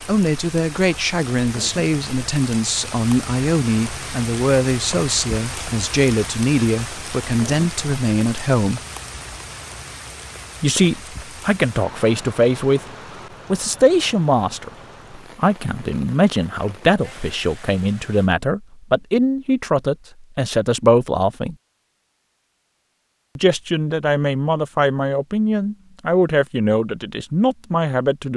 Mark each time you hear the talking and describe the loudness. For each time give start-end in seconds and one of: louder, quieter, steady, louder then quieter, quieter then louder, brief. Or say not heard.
0.0-8.8 steady
10.6-12.9 brief
13.5-21.6 steady
23.4-28.3 steady.